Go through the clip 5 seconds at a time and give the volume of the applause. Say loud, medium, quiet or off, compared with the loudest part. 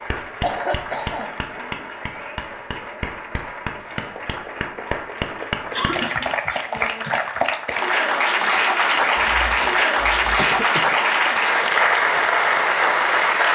quiet, loud, loud.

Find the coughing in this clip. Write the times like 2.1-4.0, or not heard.
0.4-1.4, 5.7-6.7, 9.2-10.9.